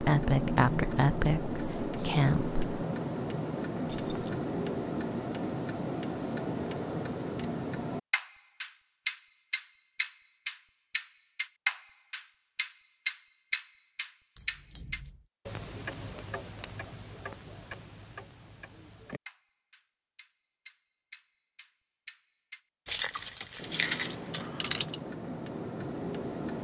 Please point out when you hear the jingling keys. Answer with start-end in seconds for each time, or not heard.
3.9-4.3, 14.3-15.2, 22.9-24.9.